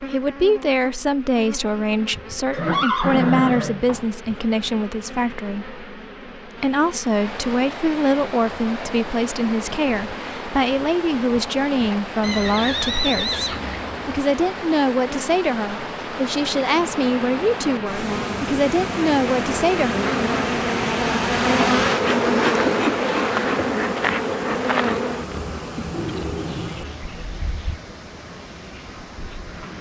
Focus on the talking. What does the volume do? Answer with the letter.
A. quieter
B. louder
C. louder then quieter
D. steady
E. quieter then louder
D.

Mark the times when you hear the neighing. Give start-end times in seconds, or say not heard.
2.5-4.0, 12.2-14.2, 25.9-26.8.